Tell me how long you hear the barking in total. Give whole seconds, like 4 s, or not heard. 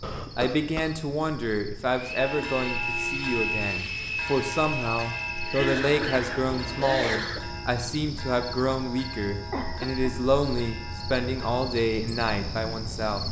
not heard.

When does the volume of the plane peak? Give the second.
3 s.